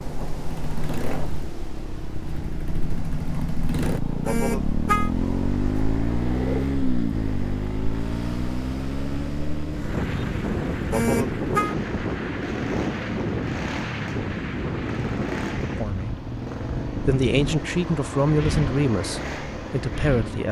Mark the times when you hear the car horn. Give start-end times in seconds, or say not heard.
4.2-5.1, 10.9-11.8.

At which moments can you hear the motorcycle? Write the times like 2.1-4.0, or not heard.
0.0-20.4.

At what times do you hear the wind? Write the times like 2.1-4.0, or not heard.
0.0-20.4.